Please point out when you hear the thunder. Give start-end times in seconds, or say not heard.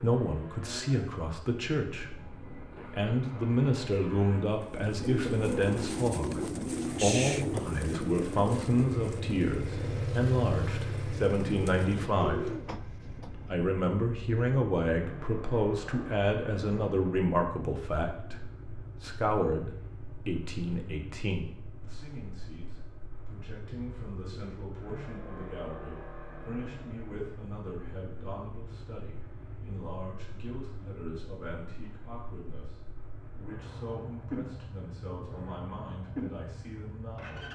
not heard.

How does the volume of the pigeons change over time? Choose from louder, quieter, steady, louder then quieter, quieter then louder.
quieter then louder.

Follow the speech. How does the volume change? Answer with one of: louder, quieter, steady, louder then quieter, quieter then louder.
quieter.